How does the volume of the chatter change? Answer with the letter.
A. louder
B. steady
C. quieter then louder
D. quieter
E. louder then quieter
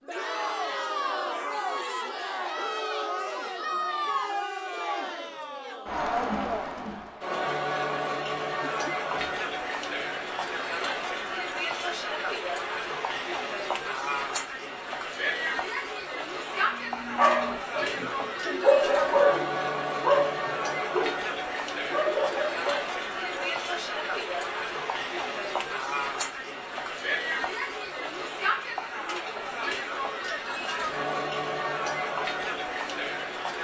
B.